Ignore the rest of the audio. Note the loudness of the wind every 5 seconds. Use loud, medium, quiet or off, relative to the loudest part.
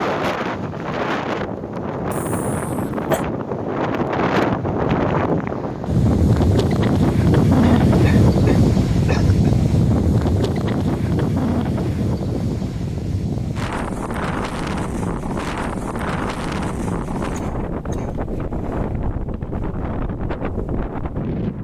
medium, loud, medium, medium, medium.